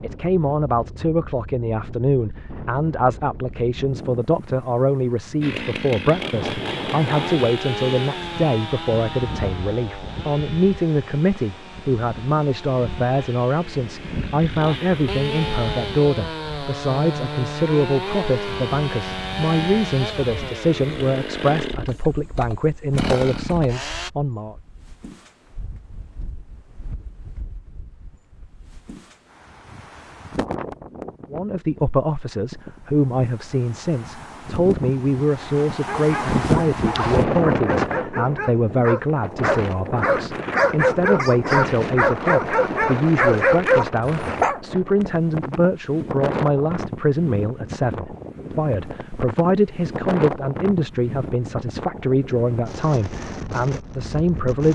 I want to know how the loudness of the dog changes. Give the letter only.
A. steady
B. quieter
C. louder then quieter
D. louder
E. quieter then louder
D.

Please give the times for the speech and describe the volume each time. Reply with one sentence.
The speech can be heard from 0.0 to 24.6 s, at a steady volume; and from 31.3 to 54.6 s, at a steady volume.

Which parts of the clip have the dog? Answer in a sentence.
The dog can be heard from 35.9 to 44.6 s.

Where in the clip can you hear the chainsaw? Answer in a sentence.
You can hear the chainsaw from 5.4 to 24.1 s.